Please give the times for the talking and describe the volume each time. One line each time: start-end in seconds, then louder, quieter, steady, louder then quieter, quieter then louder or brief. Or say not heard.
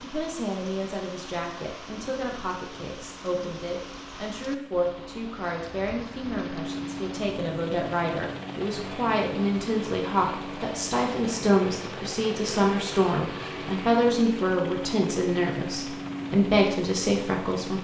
0.0-17.7 louder.